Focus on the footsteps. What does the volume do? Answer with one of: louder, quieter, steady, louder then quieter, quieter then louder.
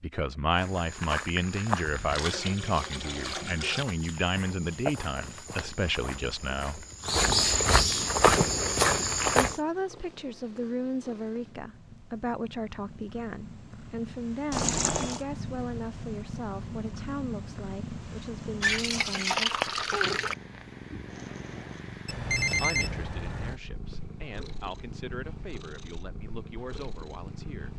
quieter then louder.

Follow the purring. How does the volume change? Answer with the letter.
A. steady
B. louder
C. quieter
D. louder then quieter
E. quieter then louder
D.